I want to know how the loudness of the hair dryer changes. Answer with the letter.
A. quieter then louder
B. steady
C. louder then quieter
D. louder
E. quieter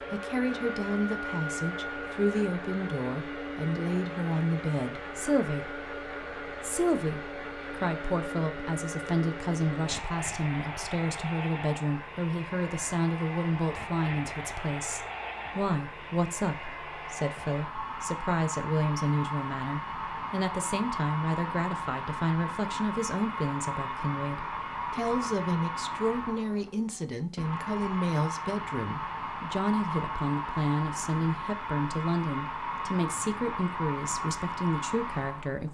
B.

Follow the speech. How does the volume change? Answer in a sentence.
The loudness of the speech stays about the same.